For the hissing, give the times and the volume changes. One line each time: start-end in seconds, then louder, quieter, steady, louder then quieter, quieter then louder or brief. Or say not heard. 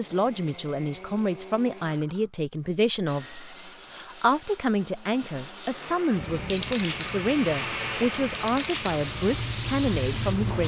6.2-10.6 quieter then louder.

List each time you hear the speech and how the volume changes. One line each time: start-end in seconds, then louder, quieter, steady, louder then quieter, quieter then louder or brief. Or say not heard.
0.0-10.6 steady.